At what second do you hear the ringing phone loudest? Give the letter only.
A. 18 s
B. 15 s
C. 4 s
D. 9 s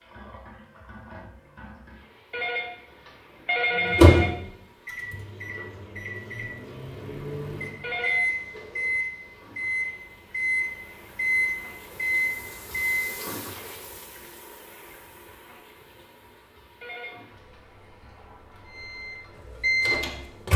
C.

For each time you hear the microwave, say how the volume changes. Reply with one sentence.
You can hear the microwave from 3.7 to 13.2 s, getting quieter then louder; and briefly from 18.6 to 20.5 s.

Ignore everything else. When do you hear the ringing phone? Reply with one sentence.
You can hear the ringing phone from 2.3 to 4.3 s, from 7.8 to 8.8 s and from 16.8 to 17.9 s.